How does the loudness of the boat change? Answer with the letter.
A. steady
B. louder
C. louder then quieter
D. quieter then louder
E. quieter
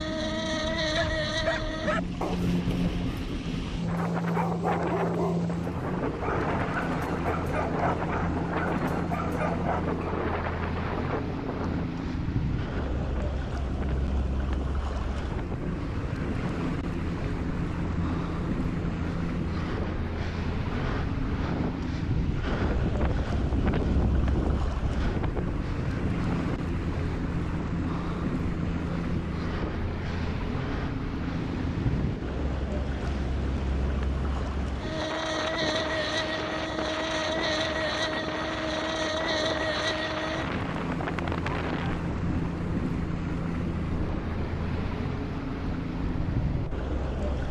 A.